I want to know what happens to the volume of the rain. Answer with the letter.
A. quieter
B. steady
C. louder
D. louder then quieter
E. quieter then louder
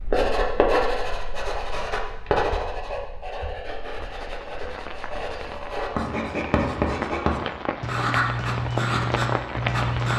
C.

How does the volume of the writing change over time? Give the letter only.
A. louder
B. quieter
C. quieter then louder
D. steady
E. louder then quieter
C.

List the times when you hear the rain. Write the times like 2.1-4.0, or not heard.
3.8-10.1.